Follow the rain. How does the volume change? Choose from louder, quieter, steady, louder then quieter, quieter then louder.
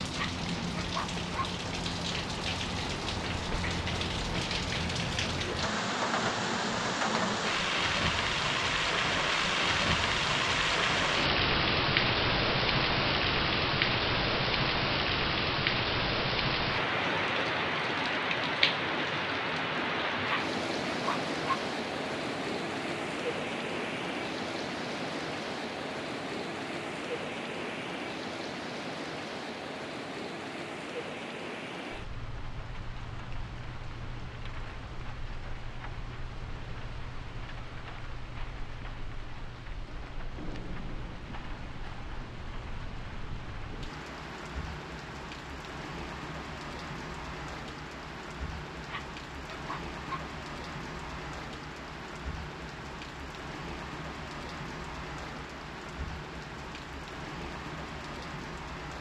quieter.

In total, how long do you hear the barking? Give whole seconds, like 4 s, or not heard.
4 s.